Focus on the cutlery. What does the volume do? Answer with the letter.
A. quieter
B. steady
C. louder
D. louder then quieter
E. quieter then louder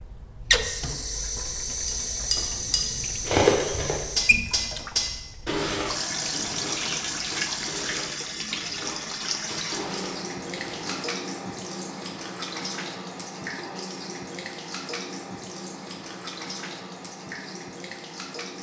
A.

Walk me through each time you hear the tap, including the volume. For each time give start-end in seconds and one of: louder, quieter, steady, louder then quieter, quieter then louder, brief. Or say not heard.
0.0-18.5 quieter.